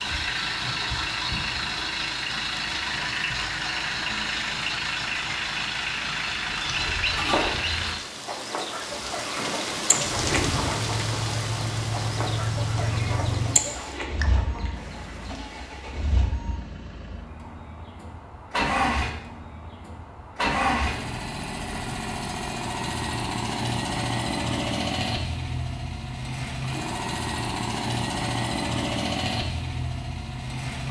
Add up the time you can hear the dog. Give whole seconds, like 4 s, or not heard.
not heard.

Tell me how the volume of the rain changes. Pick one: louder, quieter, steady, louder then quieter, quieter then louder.
louder then quieter.